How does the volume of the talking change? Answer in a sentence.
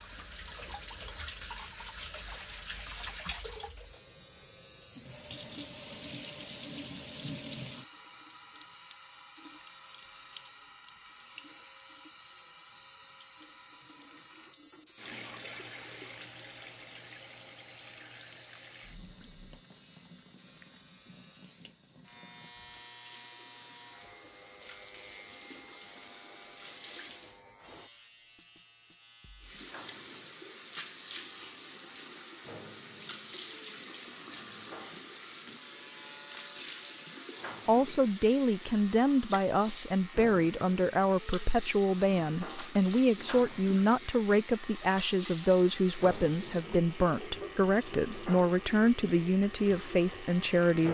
The loudness of the talking stays about the same.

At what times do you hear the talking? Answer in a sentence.
You can hear the talking from 37.6 to 50.8 s.